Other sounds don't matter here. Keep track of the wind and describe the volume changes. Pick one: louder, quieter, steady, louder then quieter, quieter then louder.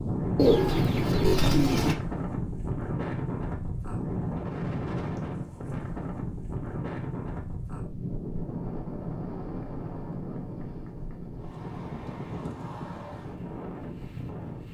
quieter.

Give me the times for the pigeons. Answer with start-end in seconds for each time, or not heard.
0.3-1.9.